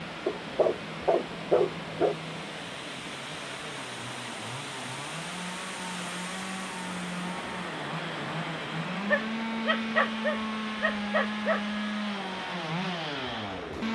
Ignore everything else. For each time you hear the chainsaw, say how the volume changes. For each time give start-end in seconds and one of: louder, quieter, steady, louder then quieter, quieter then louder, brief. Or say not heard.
0.0-13.8 louder.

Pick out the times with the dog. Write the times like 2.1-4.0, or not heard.
0.2-2.1, 9.1-11.7.